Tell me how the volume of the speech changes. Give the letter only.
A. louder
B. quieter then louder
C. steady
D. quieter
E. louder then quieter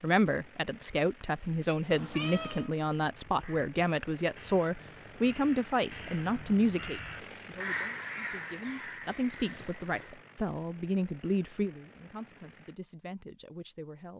D.